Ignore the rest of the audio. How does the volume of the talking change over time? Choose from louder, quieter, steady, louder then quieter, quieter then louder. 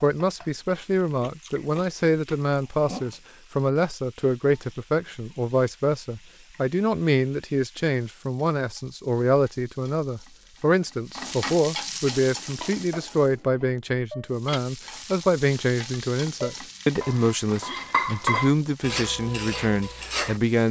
steady.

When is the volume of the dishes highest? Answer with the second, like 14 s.
18 s.